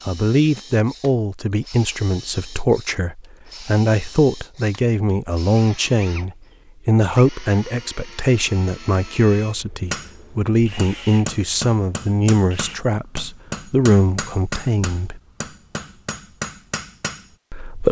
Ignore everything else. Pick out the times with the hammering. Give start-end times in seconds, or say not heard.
9.9-17.4.